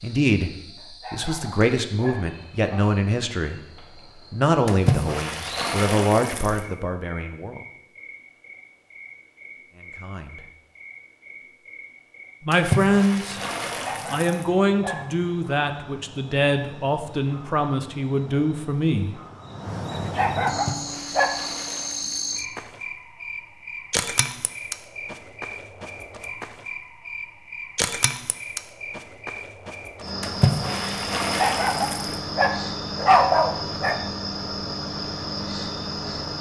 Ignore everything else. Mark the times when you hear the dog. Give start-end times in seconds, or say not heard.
0.8-2.9, 13.8-15.1, 19.9-21.4, 31.4-34.0.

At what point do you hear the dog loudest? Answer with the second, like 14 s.
33 s.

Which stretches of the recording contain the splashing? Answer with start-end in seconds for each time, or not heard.
4.7-6.6, 12.5-14.4, 20.4-22.4, 30.2-32.1.